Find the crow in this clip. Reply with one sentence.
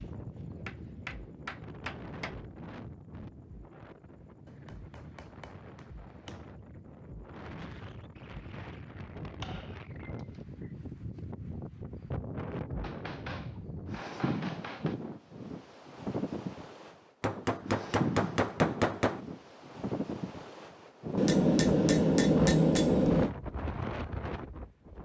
You can't hear the crow here.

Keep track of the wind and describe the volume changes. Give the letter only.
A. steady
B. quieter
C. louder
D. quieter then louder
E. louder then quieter
C.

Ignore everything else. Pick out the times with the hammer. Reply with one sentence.
You can hear the hammer from 0.5 to 2.4 s, from 4.5 to 6.5 s, from 9.2 to 10.7 s, from 12.8 to 14.9 s, from 17.2 to 19.2 s and from 21.1 to 23.3 s.